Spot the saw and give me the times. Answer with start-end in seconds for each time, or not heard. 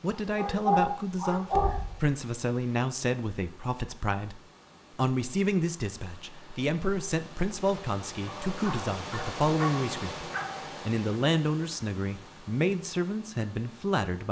not heard.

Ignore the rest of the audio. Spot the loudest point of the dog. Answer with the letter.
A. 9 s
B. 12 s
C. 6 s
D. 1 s
D.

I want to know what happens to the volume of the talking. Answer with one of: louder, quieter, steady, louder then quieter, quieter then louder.
steady.